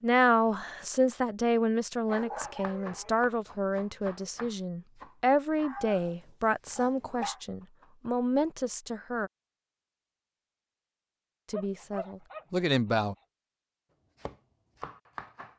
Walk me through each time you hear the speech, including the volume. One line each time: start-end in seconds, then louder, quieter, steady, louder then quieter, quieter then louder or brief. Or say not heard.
0.0-9.3 steady
11.5-13.2 brief.